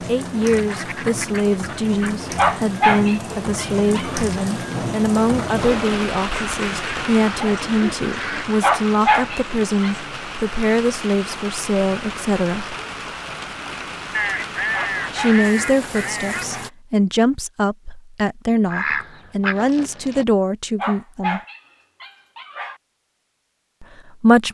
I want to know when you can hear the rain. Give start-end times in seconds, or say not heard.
0.0-16.7.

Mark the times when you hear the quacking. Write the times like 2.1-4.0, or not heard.
0.4-2.5, 6.3-8.6, 14.1-16.6, 18.6-20.2.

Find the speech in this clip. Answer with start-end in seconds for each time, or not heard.
0.1-12.8, 15.1-21.4, 23.8-24.4.